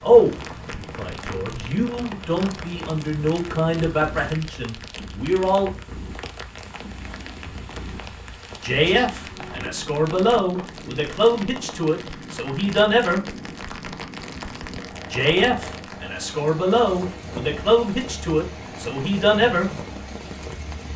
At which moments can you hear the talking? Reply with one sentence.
The talking can be heard from 0.0 to 5.7 s, from 8.6 to 13.2 s and from 15.1 to 19.7 s.